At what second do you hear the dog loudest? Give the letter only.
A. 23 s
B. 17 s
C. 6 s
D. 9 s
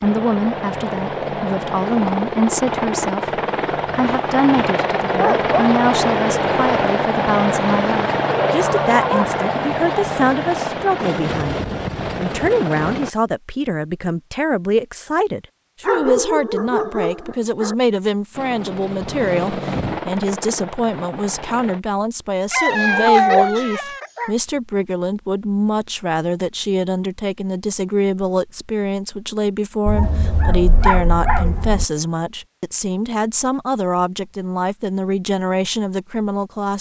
A.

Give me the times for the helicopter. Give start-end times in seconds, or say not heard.
0.0-13.1, 18.4-21.8.